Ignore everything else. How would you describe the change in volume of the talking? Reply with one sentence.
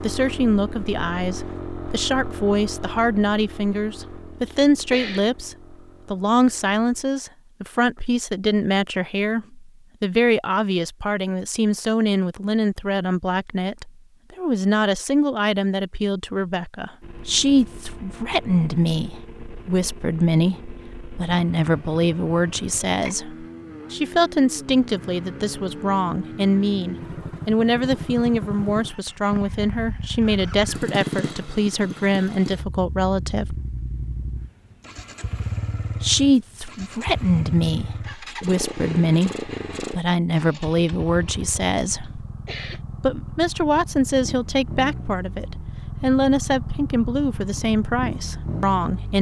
The loudness of the talking stays about the same.